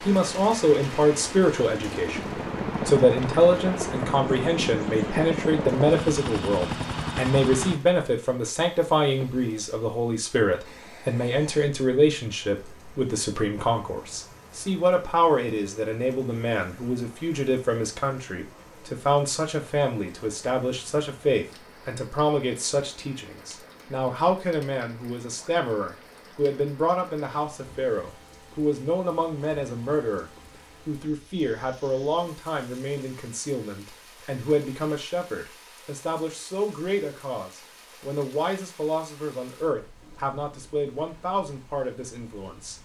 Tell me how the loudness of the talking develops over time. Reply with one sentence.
The volume of the talking goes down.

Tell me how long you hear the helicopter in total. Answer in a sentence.
You can hear the helicopter for 8 seconds altogether.